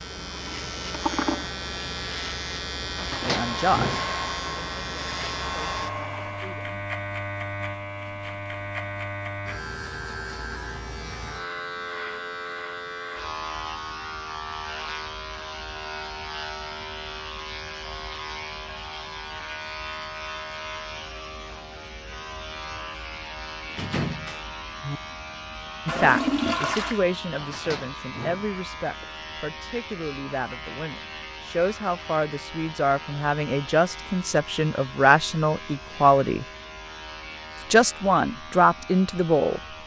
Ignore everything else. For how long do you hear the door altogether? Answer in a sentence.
The door can be heard for 4 seconds in total.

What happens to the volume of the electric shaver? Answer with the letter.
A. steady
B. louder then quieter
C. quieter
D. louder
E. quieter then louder
C.